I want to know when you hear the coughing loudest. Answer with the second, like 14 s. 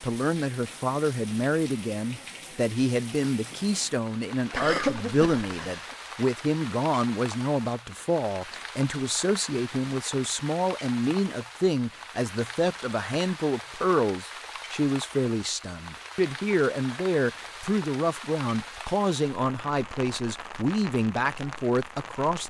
5 s.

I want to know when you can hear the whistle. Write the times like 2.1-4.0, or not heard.
not heard.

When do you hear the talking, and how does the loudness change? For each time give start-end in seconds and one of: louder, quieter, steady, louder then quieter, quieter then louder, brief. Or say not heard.
0.0-22.4 steady.